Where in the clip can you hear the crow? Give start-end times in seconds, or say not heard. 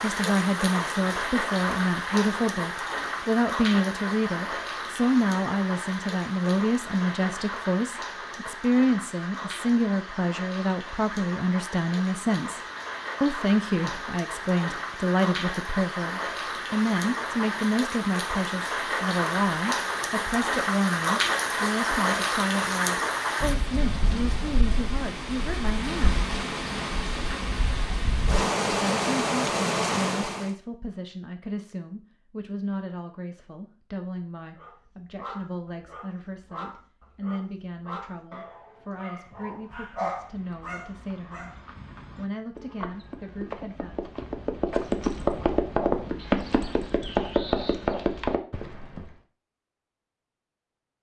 not heard.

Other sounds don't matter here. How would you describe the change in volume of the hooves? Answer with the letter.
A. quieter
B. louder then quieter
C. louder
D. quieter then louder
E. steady
C.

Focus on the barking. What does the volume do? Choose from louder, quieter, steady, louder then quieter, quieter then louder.
louder then quieter.